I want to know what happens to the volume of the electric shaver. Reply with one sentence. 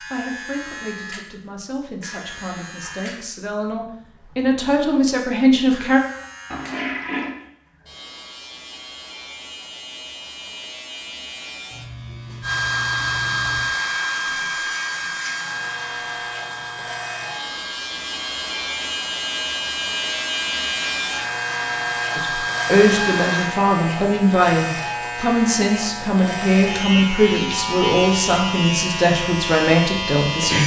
The loudness of the electric shaver goes up.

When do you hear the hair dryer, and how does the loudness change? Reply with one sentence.
The hair dryer can be heard from 12.4 to 23.6 s, getting quieter then louder.